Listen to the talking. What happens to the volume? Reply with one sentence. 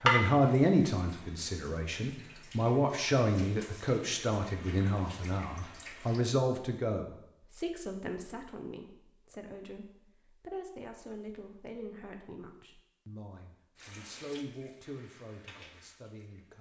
The volume of the talking goes down.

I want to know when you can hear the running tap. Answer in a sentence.
You can hear the running tap from 0.0 to 6.2 s and from 13.8 to 16.5 s.